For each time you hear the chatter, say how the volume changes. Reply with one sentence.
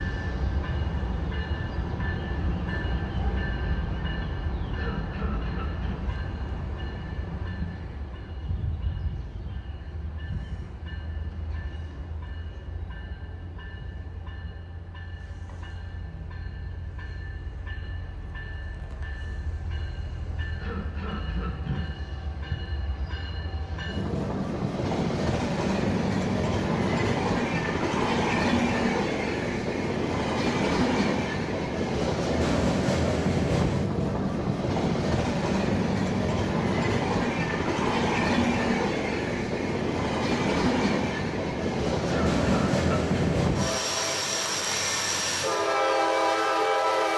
The chatter can't be heard in this clip.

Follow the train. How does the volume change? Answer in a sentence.
The volume of the train goes down, then up.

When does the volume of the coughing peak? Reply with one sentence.
The loudest moment of the coughing is at 43 seconds.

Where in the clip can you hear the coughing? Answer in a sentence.
You can hear the coughing from 4.8 to 6.0 s, from 20.6 to 21.9 s and from 42.0 to 43.4 s.